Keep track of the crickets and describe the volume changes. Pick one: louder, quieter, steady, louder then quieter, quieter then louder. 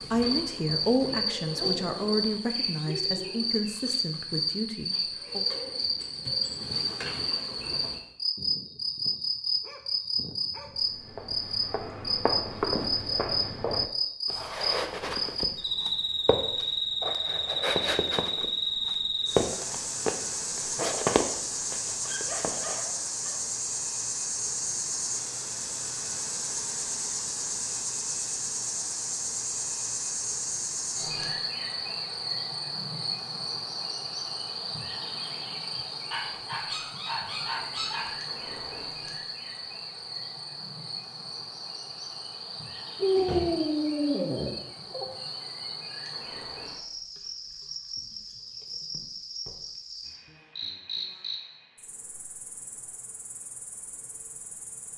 quieter.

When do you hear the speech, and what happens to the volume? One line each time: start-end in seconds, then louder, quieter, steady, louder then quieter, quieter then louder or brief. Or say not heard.
0.0-5.5 quieter.